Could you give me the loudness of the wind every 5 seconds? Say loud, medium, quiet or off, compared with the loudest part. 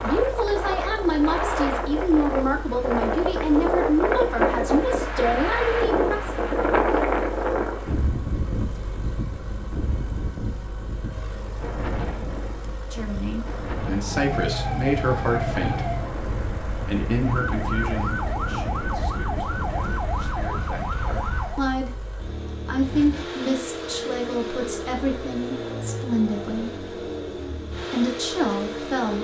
loud, loud, medium, medium, off, off.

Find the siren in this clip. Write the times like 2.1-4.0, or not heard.
13.9-21.7.